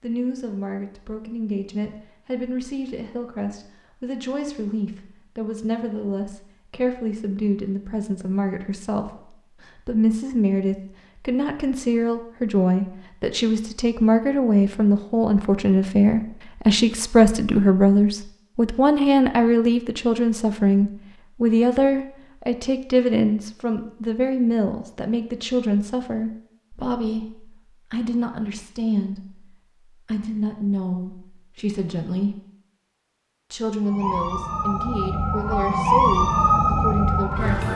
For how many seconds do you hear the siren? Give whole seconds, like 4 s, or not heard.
4 s.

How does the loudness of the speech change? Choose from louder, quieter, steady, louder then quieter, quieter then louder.
louder then quieter.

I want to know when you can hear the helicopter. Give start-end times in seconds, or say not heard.
not heard.